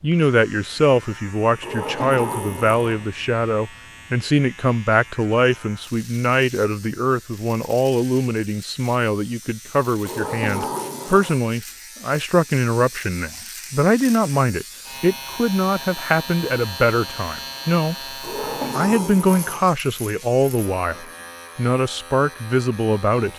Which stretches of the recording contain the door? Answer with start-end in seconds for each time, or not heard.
1.6-3.0, 10.1-11.4, 18.2-19.7.